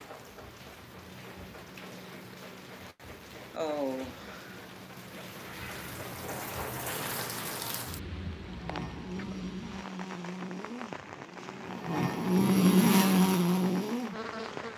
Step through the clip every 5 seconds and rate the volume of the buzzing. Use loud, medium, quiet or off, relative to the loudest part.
off, quiet, loud.